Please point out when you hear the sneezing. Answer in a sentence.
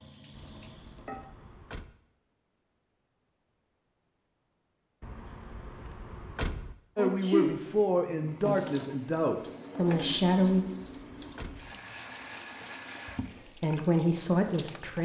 You can hear the sneezing from 7.0 to 7.5 s.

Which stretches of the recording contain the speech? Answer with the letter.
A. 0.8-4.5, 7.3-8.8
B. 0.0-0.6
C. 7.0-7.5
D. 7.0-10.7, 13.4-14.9
D.